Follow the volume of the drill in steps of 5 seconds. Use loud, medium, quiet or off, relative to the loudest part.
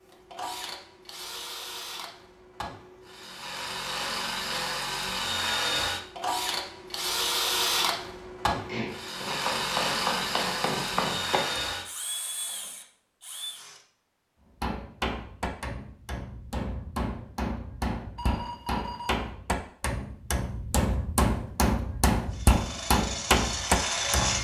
medium, loud, loud, off, loud.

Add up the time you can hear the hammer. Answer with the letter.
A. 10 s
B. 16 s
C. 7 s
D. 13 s
D.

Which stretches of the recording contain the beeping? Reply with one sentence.
You can hear the beeping from 18.1 to 19.2 s.